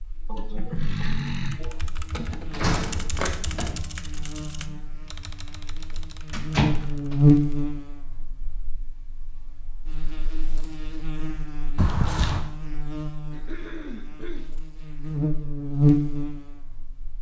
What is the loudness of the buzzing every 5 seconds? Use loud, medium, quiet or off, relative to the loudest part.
quiet, loud, quiet, loud.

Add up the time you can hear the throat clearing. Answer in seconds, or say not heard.
3 s.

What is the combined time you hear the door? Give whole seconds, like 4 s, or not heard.
3 s.